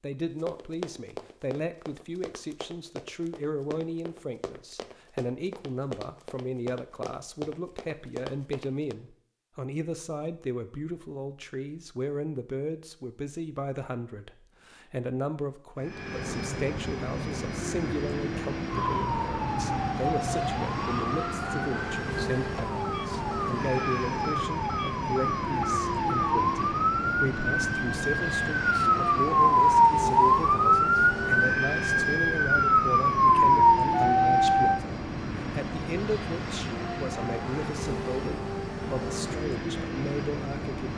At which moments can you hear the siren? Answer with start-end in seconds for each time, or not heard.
18.7-34.8.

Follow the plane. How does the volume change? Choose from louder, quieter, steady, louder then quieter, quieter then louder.
steady.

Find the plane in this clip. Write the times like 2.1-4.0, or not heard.
15.8-40.9.